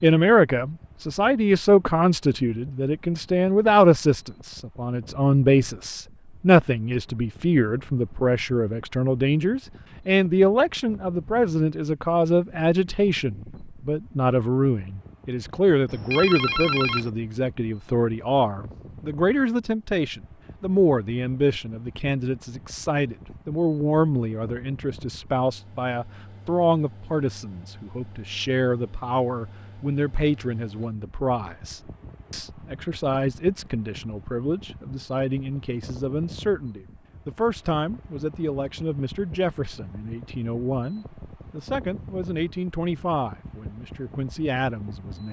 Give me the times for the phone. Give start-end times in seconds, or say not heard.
15.8-17.1.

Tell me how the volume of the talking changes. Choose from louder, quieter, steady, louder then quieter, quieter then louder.
quieter.